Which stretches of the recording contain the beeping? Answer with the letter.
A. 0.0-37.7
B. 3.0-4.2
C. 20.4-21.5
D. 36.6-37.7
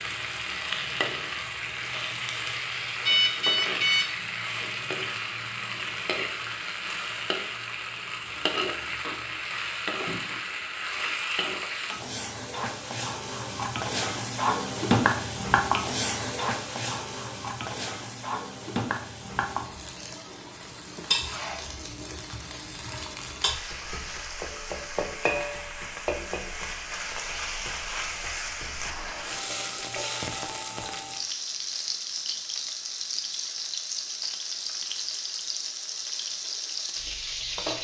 B.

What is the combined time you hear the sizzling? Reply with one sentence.
You can hear the sizzling for 38 seconds altogether.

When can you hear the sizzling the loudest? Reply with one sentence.
The volume of the sizzling peaks at 15 seconds.